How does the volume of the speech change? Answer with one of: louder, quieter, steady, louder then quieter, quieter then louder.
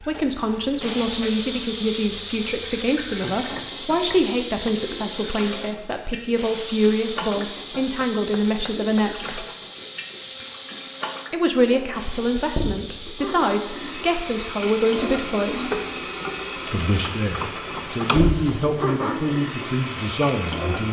steady.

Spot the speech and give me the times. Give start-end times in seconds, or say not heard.
0.1-9.4, 11.3-15.8, 16.7-20.8.